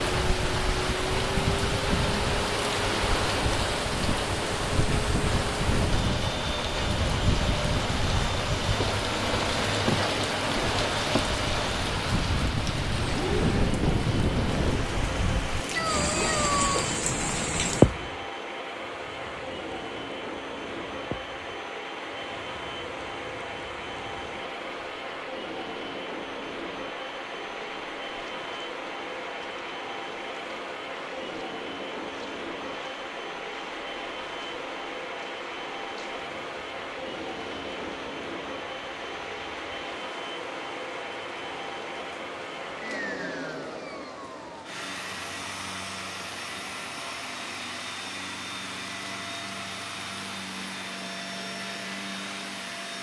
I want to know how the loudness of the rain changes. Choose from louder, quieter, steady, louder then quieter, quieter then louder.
quieter.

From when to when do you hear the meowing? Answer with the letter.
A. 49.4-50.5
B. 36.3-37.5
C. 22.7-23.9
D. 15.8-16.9
D.